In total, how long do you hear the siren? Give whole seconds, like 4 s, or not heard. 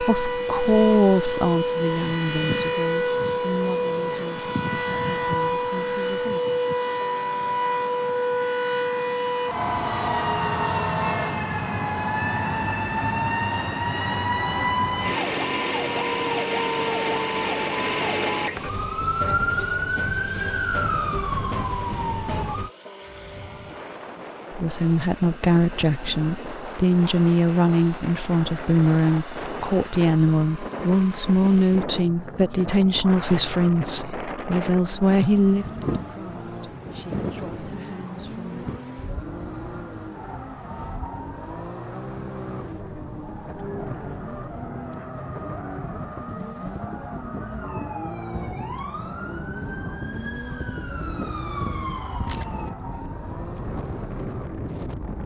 28 s.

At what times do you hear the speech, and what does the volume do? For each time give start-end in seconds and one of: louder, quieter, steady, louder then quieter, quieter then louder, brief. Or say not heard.
0.0-6.4 quieter
24.5-38.6 quieter.